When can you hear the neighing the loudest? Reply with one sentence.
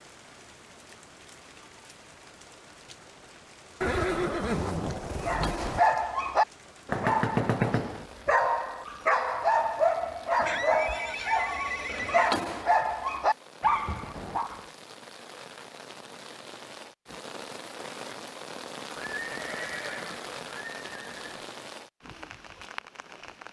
The volume of the neighing peaks at 4 seconds.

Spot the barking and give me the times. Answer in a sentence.
You can hear the barking from 5.2 to 14.7 s.